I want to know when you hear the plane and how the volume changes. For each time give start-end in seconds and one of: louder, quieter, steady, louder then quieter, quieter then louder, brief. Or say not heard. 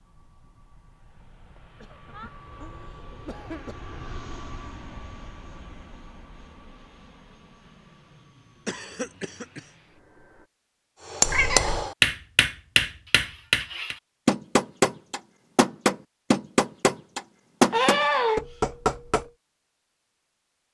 0.0-10.5 louder then quieter.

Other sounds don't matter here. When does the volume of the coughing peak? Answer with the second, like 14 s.
18 s.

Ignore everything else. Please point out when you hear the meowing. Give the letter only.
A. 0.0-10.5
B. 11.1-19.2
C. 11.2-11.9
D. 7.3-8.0
C.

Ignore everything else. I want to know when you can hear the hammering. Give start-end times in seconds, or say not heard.
11.1-19.2.